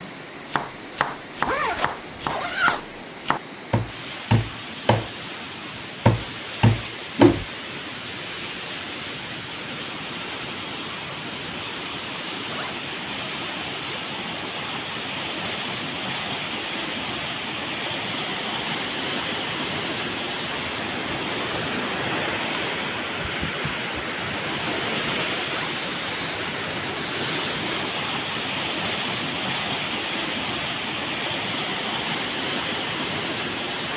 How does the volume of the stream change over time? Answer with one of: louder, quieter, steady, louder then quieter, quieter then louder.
louder.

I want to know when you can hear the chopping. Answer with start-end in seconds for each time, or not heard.
0.0-7.4.